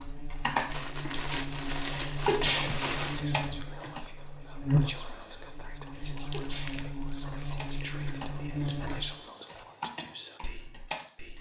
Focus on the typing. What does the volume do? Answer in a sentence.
The loudness of the typing goes down, then up.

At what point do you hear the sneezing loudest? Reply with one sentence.
The loudest moment of the sneezing is at 2 seconds.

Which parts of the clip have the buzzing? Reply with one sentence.
The buzzing can be heard from 0.0 to 9.2 s.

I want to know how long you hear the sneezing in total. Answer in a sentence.
The sneezing can be heard for 2 seconds in total.